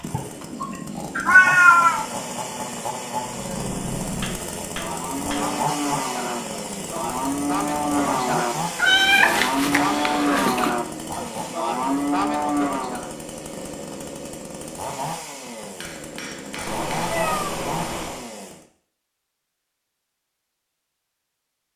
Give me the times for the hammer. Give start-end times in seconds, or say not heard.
4.2-5.5, 15.8-17.2.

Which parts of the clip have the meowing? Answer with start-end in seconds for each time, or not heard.
0.1-2.0, 8.8-10.7, 16.6-18.2.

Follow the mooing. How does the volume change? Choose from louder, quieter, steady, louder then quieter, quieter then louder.
louder.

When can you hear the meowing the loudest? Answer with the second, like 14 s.
2 s.